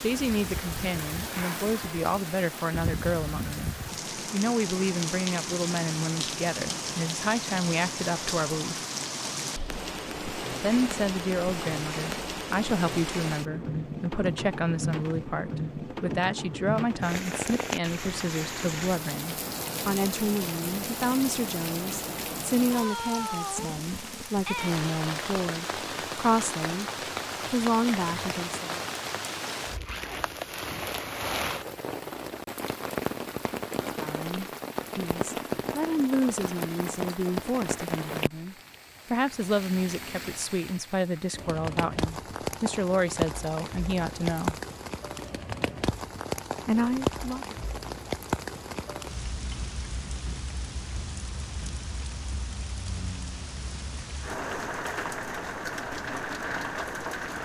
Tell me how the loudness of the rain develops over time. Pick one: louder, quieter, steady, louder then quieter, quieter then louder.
steady.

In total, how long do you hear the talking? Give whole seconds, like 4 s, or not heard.
38 s.